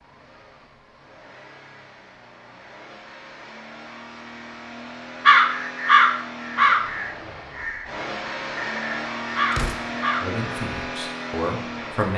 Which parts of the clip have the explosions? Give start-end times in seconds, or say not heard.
9.5-10.0.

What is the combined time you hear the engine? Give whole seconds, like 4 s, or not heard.
12 s.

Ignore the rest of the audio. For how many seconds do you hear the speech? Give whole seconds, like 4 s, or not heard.
2 s.